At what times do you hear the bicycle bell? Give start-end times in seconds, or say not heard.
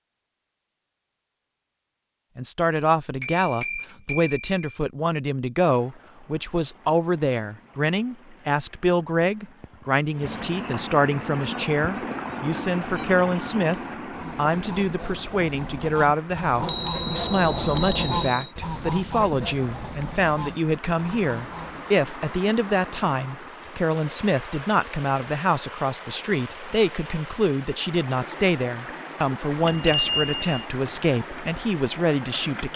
3.2-4.8, 16.6-18.5, 29.6-30.6.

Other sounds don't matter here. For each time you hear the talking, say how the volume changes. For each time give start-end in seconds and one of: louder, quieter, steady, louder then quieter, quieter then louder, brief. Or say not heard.
2.4-32.7 steady.